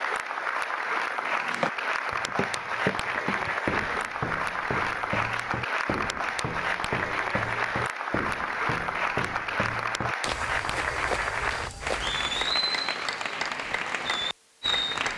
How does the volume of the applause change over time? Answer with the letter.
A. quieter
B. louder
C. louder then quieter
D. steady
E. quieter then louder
D.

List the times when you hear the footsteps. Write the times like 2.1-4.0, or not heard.
1.1-12.6.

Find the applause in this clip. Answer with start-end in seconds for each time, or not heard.
0.0-15.1.